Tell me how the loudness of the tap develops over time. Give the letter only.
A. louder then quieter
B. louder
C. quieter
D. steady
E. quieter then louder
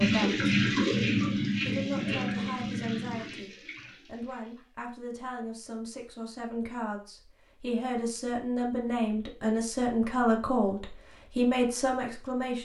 C.